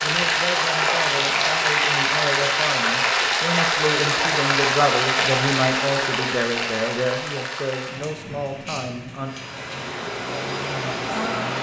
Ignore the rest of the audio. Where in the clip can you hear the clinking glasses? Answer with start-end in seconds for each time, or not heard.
not heard.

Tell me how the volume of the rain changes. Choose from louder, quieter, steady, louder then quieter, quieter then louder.
quieter.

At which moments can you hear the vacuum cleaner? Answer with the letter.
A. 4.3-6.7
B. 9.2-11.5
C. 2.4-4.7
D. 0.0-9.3
B.